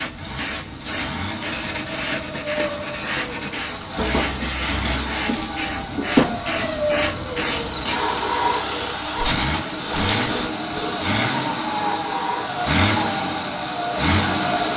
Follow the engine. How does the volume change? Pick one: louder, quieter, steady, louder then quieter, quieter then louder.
louder.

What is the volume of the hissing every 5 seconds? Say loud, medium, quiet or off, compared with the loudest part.
medium, loud, loud.